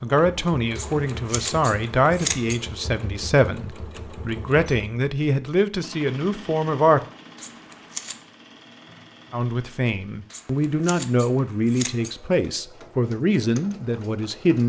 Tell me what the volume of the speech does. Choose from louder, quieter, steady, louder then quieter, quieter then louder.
steady.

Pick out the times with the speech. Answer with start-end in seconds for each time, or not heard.
0.0-7.0, 9.3-14.6.